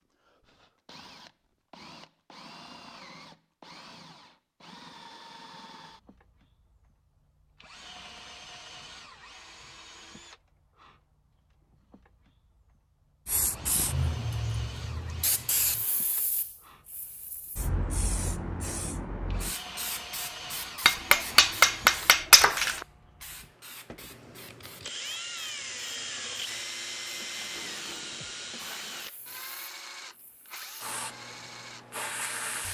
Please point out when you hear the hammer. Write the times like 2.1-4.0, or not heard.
20.9-22.9.